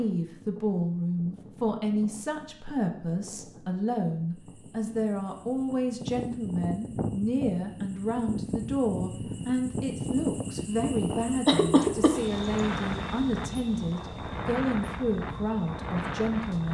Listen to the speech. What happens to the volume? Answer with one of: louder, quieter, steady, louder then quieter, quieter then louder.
steady.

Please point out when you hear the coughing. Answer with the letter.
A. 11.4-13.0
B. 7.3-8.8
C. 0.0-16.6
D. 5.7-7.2
A.